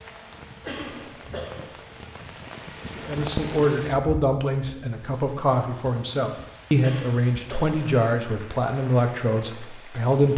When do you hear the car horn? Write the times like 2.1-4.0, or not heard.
not heard.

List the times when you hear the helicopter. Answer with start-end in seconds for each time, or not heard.
0.0-3.6.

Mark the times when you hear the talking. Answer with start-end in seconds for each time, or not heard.
3.0-10.3.